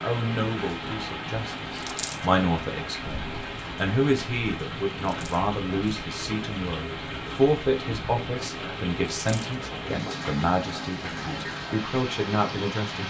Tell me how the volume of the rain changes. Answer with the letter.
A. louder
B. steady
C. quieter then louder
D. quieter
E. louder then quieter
B.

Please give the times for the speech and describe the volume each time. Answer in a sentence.
You can hear the speech from 0.0 to 13.0 s, at a steady volume.